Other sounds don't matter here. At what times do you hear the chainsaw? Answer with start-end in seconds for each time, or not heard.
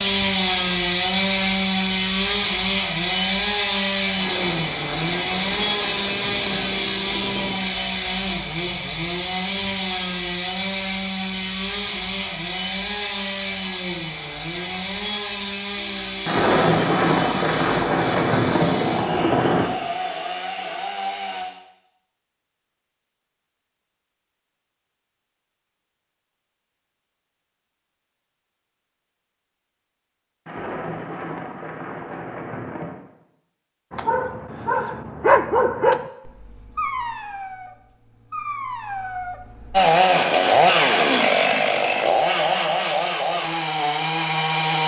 0.0-21.4, 39.7-44.8.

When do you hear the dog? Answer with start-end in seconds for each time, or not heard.
33.9-39.8.